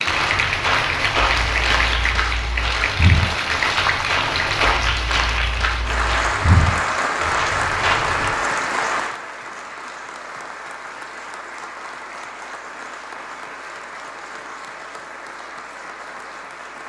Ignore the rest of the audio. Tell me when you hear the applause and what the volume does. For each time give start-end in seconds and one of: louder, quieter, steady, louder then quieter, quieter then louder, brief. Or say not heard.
0.0-16.8 quieter.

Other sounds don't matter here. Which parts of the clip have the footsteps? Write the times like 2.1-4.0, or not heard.
0.1-8.3.